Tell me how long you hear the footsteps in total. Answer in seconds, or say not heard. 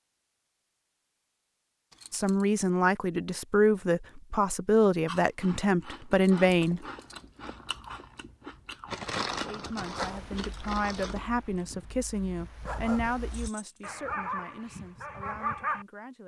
not heard.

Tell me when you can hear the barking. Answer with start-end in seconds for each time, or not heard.
9.9-15.8.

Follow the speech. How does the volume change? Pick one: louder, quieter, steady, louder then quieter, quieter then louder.
quieter.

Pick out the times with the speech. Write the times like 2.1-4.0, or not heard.
2.1-6.8, 9.4-16.2.